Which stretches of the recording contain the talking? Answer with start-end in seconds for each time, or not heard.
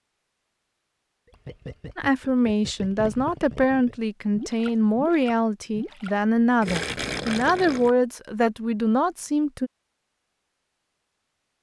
1.9-9.7.